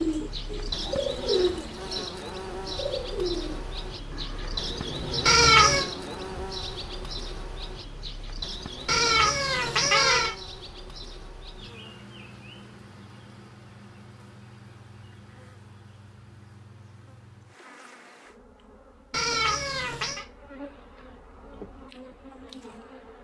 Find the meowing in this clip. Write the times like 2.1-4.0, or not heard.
5.2-5.8, 8.8-10.3, 19.1-20.2.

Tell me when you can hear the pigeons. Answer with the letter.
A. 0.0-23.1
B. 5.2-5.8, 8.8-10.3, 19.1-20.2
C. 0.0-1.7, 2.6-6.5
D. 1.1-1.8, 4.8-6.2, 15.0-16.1
C.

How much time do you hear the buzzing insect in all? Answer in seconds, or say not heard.
23 s.